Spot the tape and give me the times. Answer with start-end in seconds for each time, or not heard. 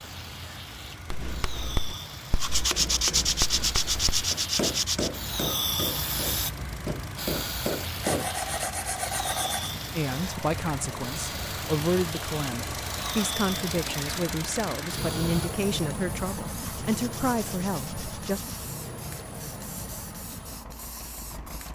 not heard.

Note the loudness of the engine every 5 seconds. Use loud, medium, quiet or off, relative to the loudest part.
medium, medium, loud, loud, medium.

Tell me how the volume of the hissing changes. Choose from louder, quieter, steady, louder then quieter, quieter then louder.
louder then quieter.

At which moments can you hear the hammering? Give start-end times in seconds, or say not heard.
1.1-8.3.